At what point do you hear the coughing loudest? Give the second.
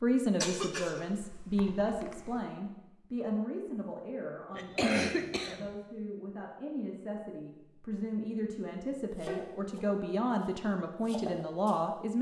5 s.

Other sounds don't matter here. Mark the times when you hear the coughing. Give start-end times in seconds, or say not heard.
0.4-2.4, 4.5-5.7, 9.2-9.8.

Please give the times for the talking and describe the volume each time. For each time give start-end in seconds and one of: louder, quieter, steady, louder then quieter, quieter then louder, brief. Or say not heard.
0.0-12.1 quieter then louder.